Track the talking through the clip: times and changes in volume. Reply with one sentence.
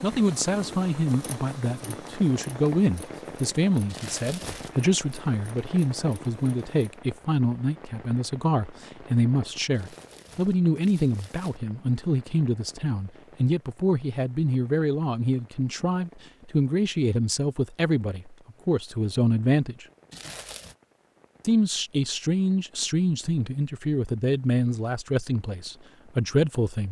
The talking can be heard from 0.0 to 19.9 s, at a steady volume; and from 21.4 to 26.8 s, at a steady volume.